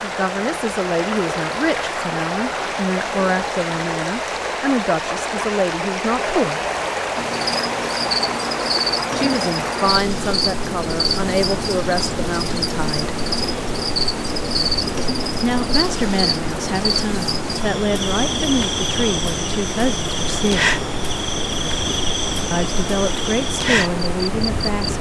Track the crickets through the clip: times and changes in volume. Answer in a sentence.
You can hear the crickets from 7.2 to 24.9 s, at a steady volume.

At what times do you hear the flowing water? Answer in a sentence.
You can hear the flowing water from 0.0 to 24.9 s.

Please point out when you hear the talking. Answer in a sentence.
You can hear the talking from 0.0 to 6.6 s, from 9.2 to 13.2 s, from 15.4 to 20.8 s and from 22.5 to 24.9 s.